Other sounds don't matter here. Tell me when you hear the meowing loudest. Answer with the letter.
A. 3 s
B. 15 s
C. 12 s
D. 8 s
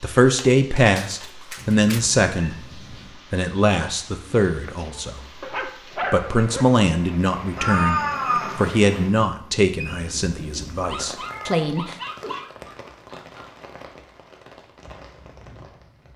D.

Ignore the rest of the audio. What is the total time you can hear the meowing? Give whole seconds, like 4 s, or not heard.
4 s.